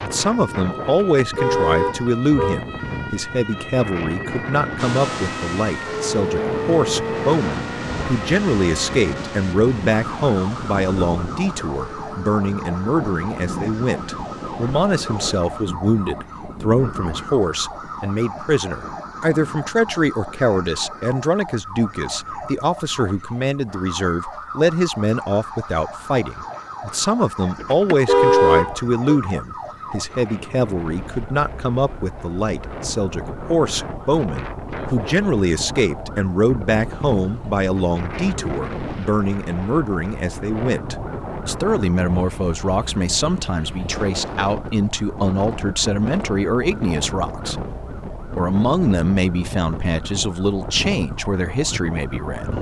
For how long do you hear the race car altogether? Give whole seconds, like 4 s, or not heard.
11 s.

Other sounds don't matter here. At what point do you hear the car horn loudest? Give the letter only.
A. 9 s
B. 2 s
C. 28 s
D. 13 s
C.